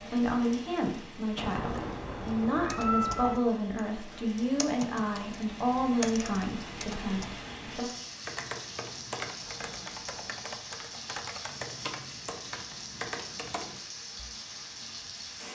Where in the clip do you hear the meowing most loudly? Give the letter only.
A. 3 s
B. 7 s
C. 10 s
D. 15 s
A.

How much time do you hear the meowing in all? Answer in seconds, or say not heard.
3 s.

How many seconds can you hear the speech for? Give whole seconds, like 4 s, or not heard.
8 s.